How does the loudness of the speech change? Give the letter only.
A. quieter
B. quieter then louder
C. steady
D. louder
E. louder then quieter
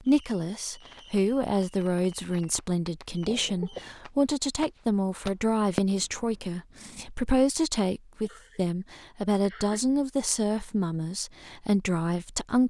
C.